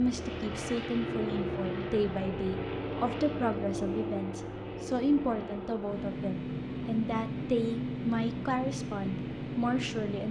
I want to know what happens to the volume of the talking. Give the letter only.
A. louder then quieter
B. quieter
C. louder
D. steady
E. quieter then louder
D.